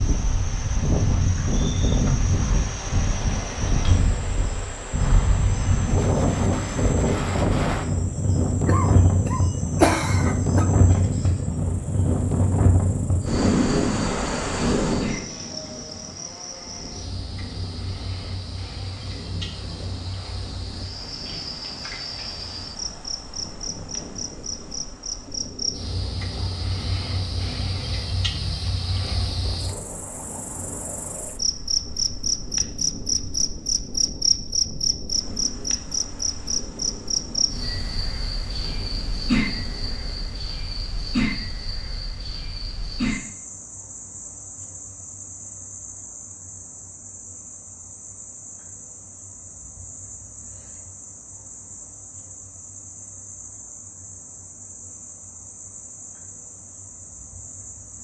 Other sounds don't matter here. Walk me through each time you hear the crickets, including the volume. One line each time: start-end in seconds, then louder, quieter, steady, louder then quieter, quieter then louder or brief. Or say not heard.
0.0-57.9 louder then quieter.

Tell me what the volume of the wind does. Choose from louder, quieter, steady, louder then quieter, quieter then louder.
quieter.